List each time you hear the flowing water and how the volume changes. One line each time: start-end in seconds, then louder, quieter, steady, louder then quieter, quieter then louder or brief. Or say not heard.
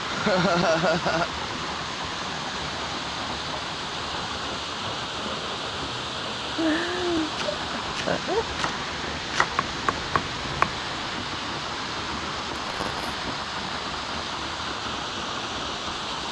0.0-16.2 steady.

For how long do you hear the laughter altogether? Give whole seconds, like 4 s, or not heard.
4 s.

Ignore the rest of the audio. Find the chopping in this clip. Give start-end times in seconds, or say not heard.
7.2-10.8.